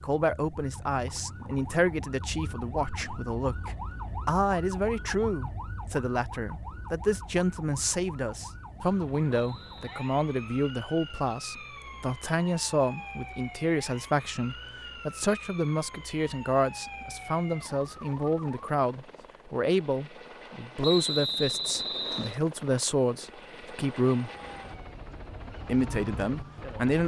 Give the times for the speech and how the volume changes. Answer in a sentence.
The speech can be heard from 0.0 to 24.3 s, at a steady volume; and briefly from 25.6 to 27.0 s.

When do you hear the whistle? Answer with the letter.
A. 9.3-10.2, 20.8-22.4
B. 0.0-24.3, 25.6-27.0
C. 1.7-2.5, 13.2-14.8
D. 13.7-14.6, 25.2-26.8
A.